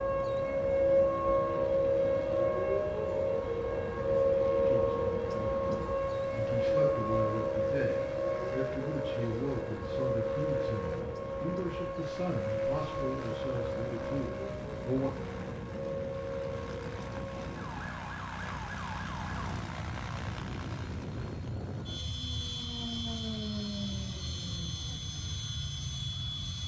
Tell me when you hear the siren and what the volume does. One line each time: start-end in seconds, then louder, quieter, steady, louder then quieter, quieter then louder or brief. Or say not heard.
0.0-26.6 quieter.